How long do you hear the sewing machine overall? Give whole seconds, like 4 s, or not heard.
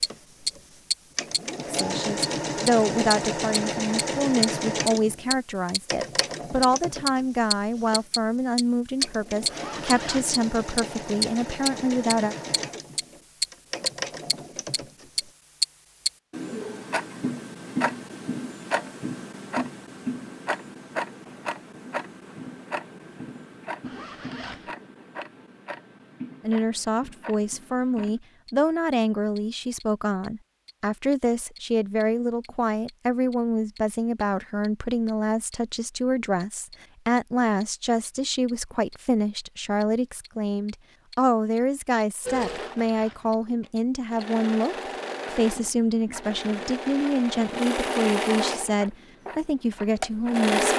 24 s.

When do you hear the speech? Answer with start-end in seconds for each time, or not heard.
1.7-12.3, 26.4-50.7.